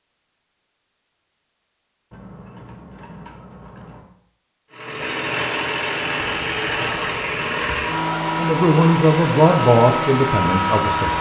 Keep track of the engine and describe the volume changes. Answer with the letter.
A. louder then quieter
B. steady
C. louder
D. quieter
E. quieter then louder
B.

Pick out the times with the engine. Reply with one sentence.
You can hear the engine from 4.7 to 11.1 s.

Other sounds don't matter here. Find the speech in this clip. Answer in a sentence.
The speech can be heard from 8.3 to 11.1 s.